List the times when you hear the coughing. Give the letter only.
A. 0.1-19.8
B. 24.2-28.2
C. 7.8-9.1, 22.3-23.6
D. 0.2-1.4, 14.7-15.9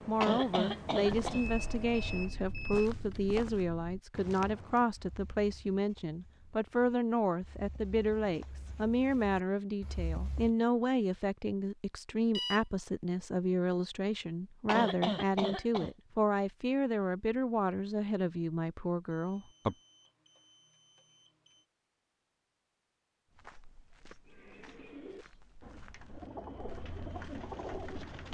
D.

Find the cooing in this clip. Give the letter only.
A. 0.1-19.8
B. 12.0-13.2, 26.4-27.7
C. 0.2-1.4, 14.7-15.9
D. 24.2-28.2
D.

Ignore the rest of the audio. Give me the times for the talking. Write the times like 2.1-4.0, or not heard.
0.1-19.8.